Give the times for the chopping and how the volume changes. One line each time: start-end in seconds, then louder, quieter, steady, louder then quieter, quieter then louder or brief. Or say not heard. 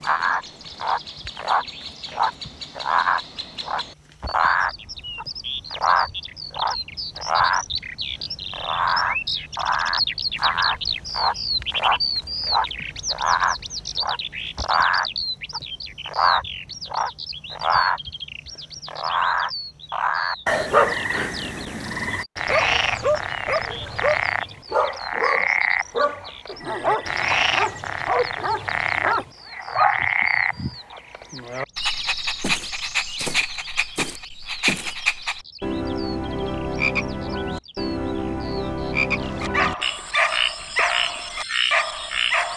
not heard.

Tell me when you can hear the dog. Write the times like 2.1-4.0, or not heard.
20.7-30.8, 39.2-42.5.